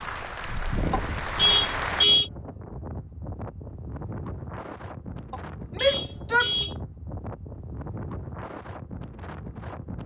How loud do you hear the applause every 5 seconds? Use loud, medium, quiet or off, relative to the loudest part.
loud, off.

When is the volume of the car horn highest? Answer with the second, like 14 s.
2 s.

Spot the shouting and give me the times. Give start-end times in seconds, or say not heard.
5.8-6.5.